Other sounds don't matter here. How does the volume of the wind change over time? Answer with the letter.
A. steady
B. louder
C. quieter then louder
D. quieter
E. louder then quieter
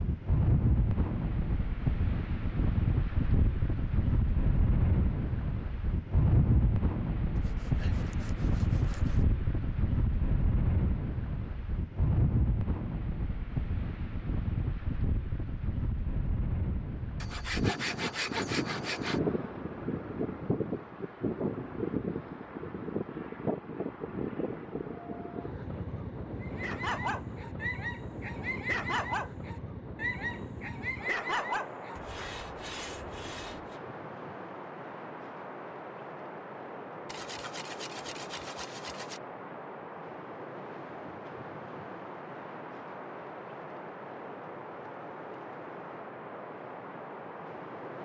D.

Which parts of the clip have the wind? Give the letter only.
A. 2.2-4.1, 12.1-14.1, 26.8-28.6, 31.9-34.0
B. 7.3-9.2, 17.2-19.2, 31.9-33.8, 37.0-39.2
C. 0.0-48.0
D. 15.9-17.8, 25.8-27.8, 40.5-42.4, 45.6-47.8
C.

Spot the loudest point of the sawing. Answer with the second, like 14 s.
18 s.